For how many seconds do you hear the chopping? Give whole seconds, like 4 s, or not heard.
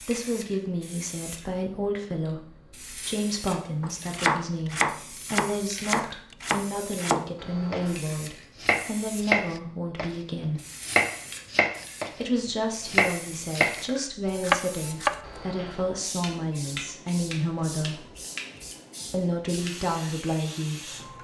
10 s.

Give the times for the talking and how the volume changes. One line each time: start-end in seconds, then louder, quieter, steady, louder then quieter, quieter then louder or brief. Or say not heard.
0.0-10.6 steady
12.2-18.1 steady
19.1-21.1 brief.